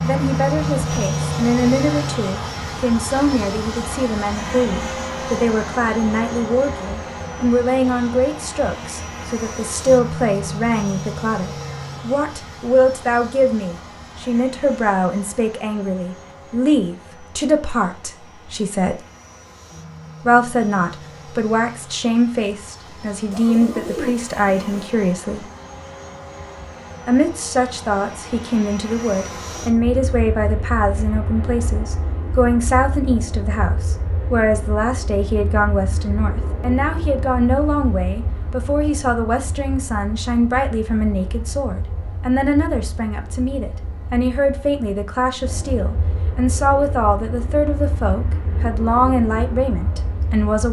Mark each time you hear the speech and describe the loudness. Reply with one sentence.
You can hear the speech from 0.0 to 19.0 s, at a steady volume; from 20.2 to 25.4 s, getting quieter then louder; and from 27.1 to 50.6 s, at a steady volume.